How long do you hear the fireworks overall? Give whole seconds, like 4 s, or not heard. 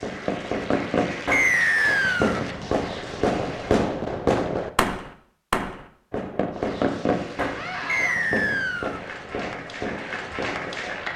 11 s.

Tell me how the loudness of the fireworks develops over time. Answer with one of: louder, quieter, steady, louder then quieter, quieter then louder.
quieter.